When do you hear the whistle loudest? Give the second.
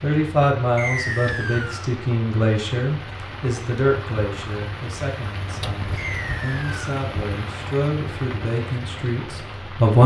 1 s.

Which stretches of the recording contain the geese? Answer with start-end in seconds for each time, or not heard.
not heard.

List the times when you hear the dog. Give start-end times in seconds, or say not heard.
not heard.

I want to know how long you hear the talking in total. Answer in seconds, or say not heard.
10 s.